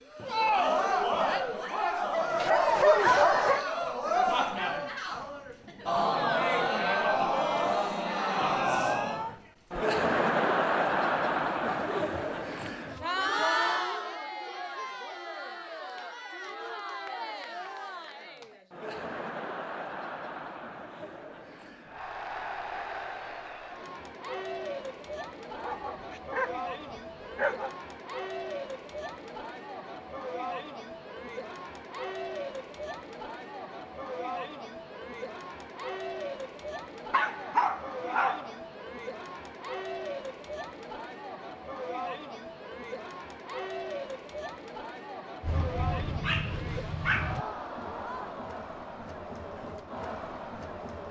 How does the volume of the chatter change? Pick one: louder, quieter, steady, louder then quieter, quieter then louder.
quieter.